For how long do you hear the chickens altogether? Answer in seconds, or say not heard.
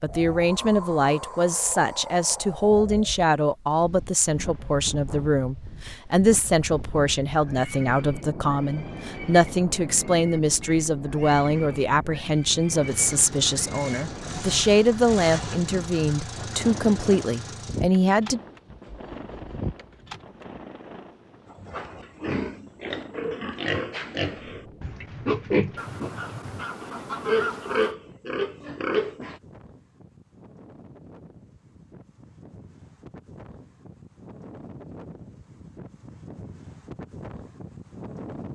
2 s.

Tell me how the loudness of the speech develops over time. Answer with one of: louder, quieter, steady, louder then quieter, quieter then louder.
steady.